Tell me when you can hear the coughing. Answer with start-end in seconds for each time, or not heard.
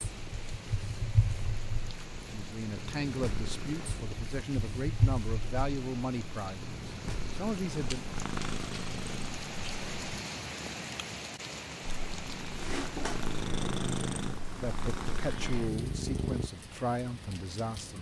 not heard.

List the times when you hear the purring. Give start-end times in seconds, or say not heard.
0.0-10.2, 11.8-16.5.